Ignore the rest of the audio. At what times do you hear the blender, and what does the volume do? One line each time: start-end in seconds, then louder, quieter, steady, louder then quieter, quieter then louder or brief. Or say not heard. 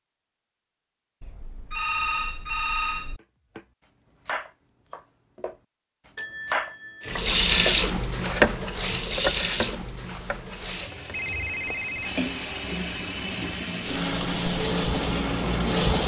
10.4-15.8 louder.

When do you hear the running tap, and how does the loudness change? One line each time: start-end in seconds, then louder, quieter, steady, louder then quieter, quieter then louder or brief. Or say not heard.
7.0-16.0 quieter then louder.